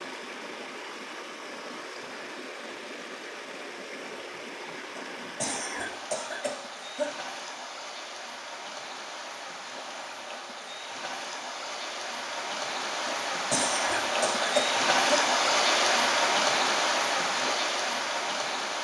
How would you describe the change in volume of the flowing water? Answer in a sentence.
The loudness of the flowing water goes up.